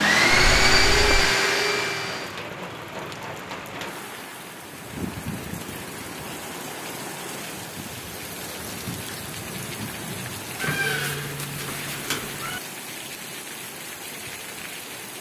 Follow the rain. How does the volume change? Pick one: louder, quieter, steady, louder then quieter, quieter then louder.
steady.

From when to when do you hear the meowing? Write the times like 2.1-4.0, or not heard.
0.3-1.4, 10.6-12.6.